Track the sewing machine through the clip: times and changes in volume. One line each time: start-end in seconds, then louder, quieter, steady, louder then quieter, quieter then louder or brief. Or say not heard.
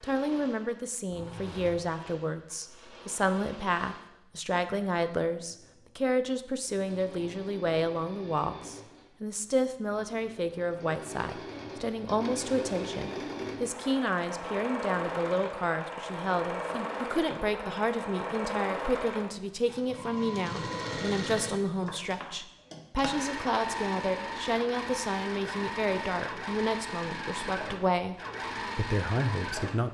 0.0-29.8 louder.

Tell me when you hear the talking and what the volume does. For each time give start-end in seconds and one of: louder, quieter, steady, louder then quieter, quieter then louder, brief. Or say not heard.
0.0-29.8 steady.